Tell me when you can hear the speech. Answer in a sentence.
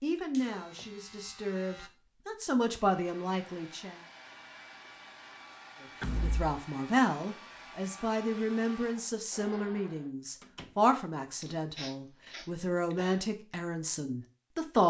The speech can be heard from 0.0 to 4.0 s and from 5.8 to 14.8 s.